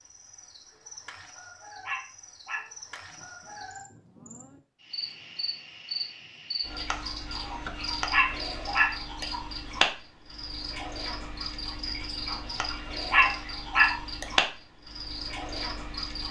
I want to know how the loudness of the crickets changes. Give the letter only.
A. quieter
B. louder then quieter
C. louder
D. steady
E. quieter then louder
C.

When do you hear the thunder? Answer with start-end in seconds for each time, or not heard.
3.1-4.6.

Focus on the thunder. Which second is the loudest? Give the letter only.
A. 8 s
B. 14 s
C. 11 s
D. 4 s
D.